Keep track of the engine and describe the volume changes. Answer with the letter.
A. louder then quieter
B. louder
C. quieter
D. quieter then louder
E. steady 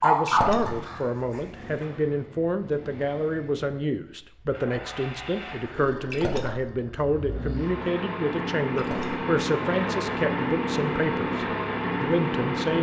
B.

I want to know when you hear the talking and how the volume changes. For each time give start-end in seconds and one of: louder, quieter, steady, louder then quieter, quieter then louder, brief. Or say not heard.
0.0-12.7 steady.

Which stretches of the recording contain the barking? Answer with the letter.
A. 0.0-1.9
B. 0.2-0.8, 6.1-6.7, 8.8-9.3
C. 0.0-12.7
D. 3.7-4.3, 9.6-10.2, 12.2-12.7
A.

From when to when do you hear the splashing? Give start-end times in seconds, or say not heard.
0.2-0.8, 6.1-6.7, 8.8-9.3.